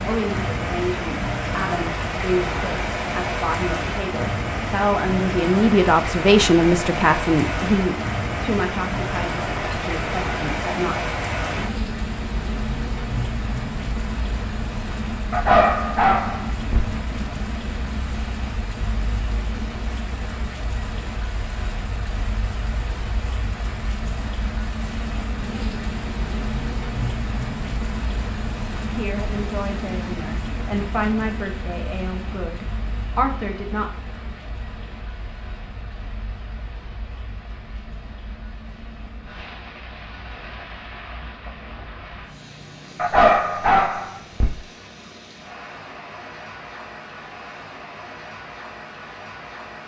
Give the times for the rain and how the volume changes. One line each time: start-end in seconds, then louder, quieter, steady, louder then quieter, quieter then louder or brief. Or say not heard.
0.0-49.8 quieter.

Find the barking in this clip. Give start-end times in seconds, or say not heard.
15.3-16.9, 43.0-44.5.